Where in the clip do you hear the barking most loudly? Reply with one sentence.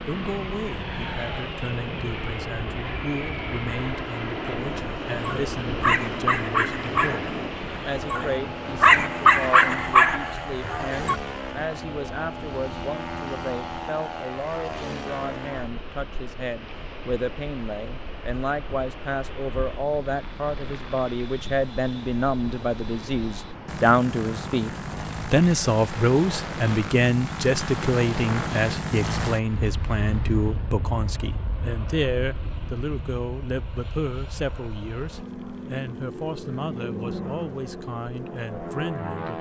The volume of the barking peaks at 9 seconds.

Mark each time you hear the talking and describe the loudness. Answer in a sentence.
The talking can be heard from 0.1 to 39.3 s, getting louder then quieter.